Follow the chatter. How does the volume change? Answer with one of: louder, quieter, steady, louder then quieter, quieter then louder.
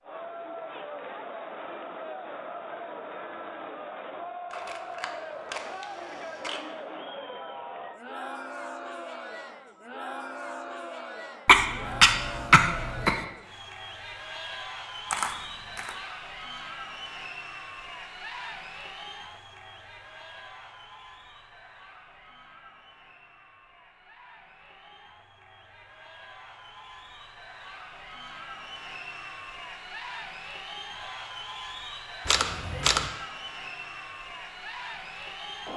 quieter then louder.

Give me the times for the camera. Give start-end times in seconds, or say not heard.
4.5-6.6, 15.1-15.9, 32.2-33.1.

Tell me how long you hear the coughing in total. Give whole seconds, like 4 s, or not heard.
2 s.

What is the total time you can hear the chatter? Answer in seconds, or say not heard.
36 s.